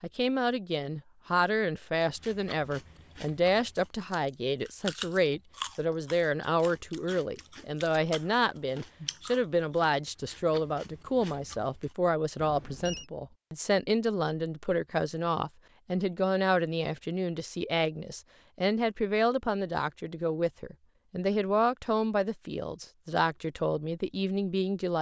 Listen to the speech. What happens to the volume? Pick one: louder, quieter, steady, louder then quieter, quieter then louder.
steady.